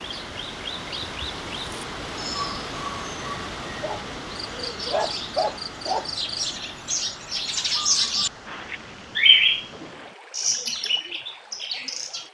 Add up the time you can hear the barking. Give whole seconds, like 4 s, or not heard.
2 s.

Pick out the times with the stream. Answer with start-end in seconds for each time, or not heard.
0.0-12.2.